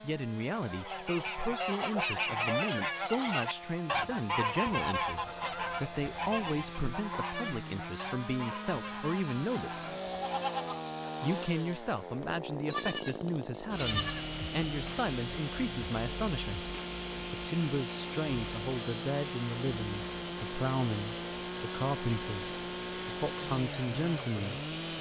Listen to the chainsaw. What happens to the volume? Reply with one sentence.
The volume of the chainsaw goes up.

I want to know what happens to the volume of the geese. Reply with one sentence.
The loudness of the geese goes down.